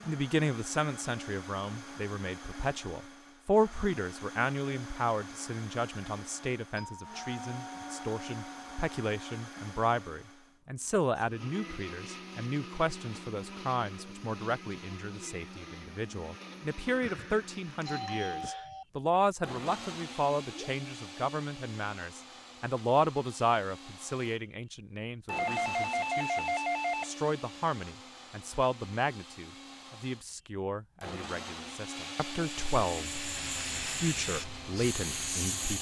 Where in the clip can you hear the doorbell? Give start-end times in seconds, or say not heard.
6.8-9.2, 17.0-18.9, 25.2-27.1.